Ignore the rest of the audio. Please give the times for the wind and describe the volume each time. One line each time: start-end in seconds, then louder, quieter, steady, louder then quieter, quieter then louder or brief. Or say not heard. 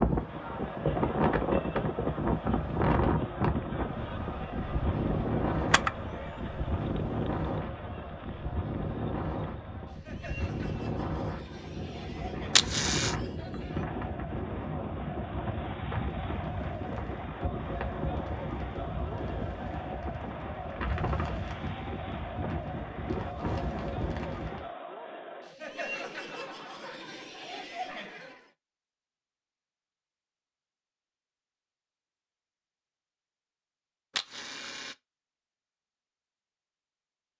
0.0-24.7 quieter.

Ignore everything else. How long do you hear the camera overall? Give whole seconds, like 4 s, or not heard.
3 s.